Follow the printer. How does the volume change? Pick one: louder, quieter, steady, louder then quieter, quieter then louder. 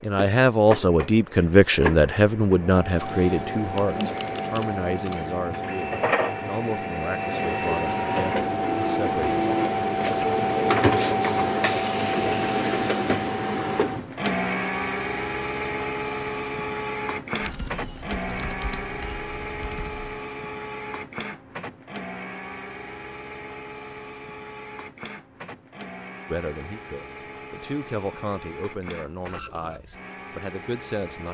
louder then quieter.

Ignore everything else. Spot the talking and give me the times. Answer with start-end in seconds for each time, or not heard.
0.0-9.4, 26.2-31.3.